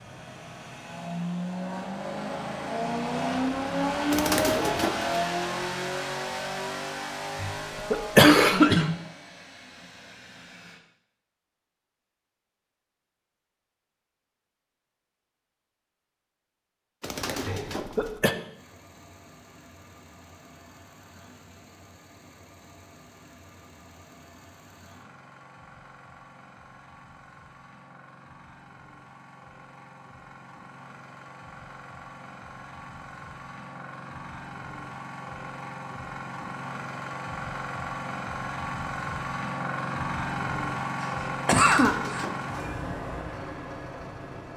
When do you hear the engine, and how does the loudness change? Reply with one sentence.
You can hear the engine from 0.0 to 10.8 s, getting louder then quieter; and from 18.5 to 44.5 s, getting louder.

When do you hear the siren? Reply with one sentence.
The siren can't be heard in this clip.